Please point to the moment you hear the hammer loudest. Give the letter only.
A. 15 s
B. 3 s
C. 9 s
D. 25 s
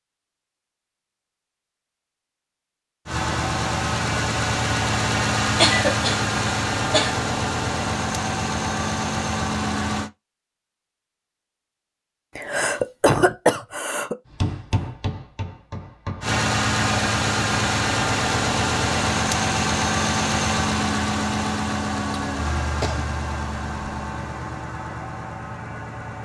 A.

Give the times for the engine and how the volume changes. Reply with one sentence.
You can hear the engine from 3.0 to 10.1 s, at a steady volume; and from 16.2 to 26.1 s, getting quieter.